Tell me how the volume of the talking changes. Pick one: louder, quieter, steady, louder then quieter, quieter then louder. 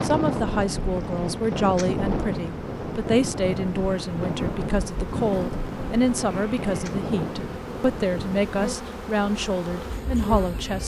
steady.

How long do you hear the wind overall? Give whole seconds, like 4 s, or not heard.
9 s.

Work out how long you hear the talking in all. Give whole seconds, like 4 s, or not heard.
11 s.